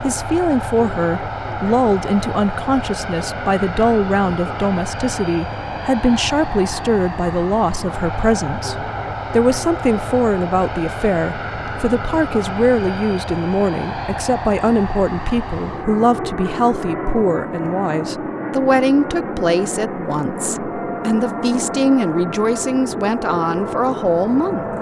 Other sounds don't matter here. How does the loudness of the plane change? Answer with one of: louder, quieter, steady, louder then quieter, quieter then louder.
steady.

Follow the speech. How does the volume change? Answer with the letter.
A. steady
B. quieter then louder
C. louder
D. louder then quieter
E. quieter
A.